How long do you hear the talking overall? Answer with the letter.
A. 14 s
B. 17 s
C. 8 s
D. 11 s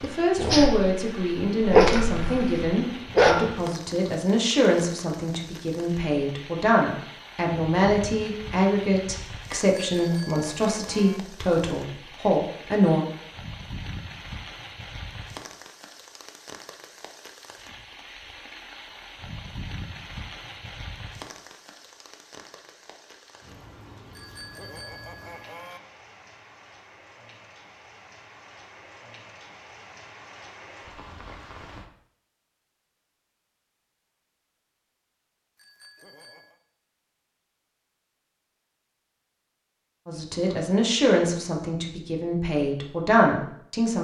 B.